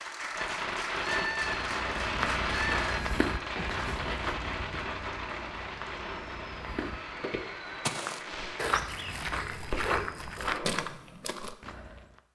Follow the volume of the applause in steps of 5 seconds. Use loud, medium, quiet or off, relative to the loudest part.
loud, medium, off.